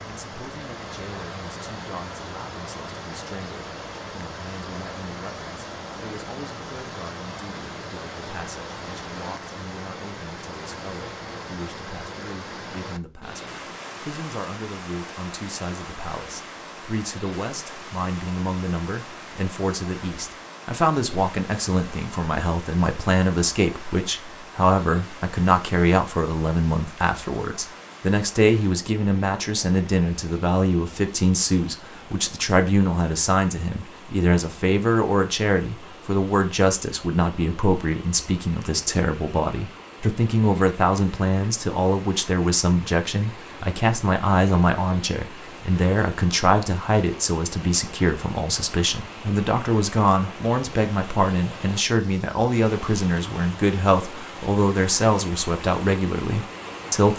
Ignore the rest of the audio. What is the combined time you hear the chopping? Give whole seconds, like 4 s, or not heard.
not heard.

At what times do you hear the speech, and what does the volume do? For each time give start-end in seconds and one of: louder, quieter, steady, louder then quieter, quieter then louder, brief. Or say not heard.
0.1-57.1 louder.